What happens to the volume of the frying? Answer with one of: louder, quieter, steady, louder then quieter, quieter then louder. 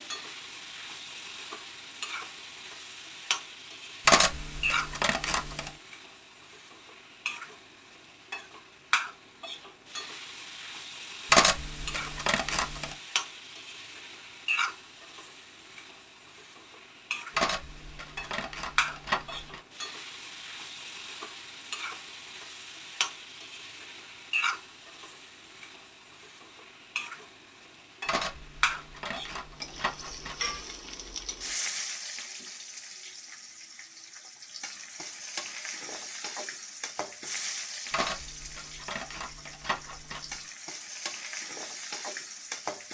steady.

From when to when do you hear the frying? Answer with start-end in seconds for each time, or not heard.
0.0-42.8.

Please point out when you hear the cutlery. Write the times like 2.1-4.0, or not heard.
4.0-5.7, 11.3-12.9, 17.4-19.6, 28.1-30.6, 37.9-40.4.